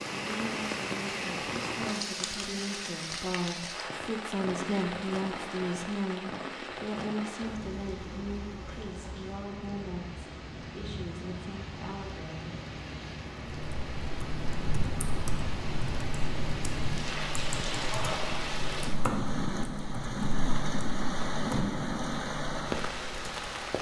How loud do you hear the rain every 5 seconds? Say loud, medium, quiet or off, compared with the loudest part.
loud, medium, medium, loud, loud.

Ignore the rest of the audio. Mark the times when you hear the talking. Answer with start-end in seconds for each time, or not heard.
0.1-12.6.